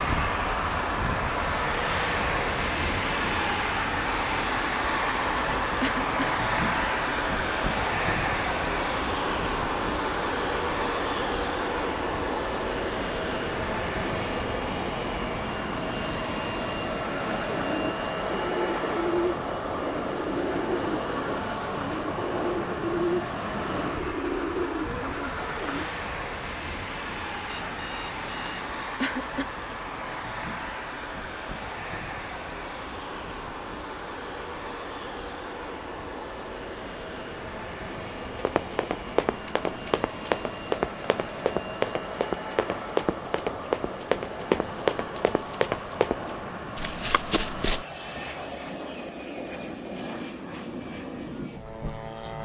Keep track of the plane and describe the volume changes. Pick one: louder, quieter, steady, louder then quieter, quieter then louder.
quieter.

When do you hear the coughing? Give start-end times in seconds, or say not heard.
5.8-6.3, 29.0-29.6.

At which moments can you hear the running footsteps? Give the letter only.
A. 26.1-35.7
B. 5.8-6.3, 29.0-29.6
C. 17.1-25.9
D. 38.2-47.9
D.